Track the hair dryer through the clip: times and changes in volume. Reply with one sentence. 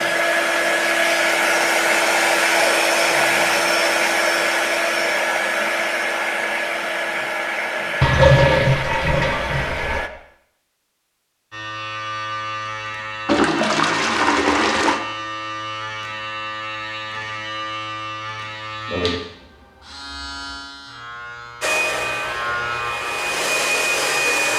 The hair dryer can be heard from 0.0 to 10.1 s, getting quieter; and briefly from 21.6 to 24.5 s.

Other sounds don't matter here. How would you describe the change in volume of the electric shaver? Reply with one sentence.
The volume of the electric shaver stays about the same.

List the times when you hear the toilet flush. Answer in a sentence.
You can hear the toilet flush from 8.0 to 10.0 s and from 13.2 to 15.0 s.